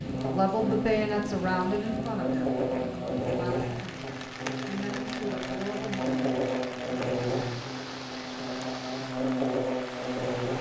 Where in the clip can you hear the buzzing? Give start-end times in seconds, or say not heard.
0.0-10.5.